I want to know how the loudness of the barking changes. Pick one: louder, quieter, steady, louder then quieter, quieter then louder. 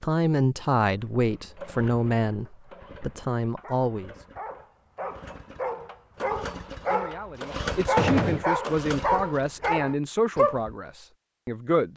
louder.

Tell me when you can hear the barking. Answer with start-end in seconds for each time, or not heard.
1.0-10.8.